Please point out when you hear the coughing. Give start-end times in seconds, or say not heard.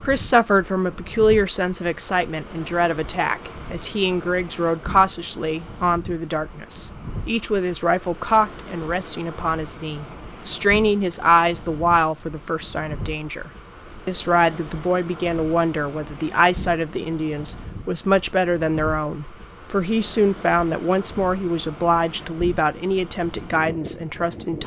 not heard.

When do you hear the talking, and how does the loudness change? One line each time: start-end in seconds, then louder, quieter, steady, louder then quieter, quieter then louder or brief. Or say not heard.
0.0-24.6 steady.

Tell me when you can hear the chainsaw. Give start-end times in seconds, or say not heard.
not heard.